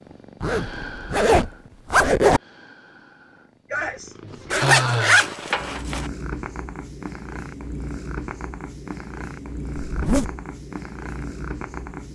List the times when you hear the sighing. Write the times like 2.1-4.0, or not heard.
3.7-5.2.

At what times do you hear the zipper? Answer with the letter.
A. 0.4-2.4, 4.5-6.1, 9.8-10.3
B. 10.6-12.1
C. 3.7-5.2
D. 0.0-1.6
A.